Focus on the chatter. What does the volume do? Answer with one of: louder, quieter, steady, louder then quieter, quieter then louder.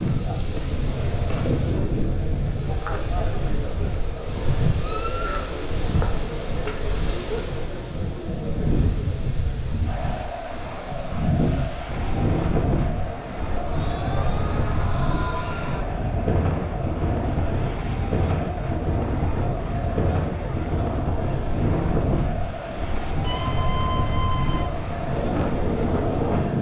steady.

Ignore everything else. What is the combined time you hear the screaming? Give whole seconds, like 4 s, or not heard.
4 s.